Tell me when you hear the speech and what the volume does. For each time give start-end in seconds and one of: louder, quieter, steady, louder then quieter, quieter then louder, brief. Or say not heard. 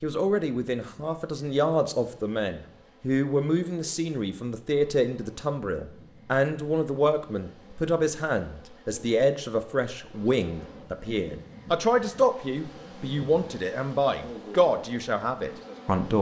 0.0-16.1 steady.